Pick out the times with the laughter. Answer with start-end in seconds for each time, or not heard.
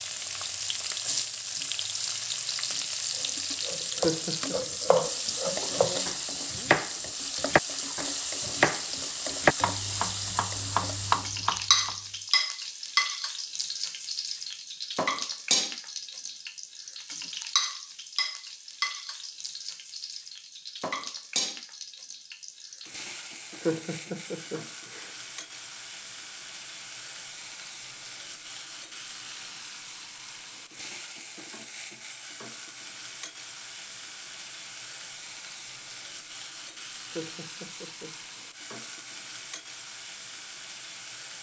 4.0-4.5, 23.6-25.1, 37.1-38.1.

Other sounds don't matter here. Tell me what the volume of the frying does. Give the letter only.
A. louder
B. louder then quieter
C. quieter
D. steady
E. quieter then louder
C.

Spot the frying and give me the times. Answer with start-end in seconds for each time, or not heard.
0.0-41.3.